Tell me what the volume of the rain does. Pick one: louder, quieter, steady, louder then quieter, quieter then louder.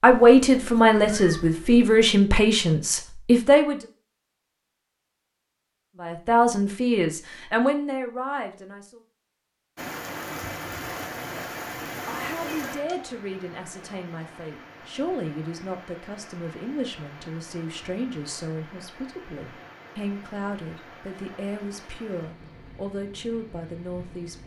quieter.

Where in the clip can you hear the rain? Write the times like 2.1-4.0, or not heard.
9.8-24.4.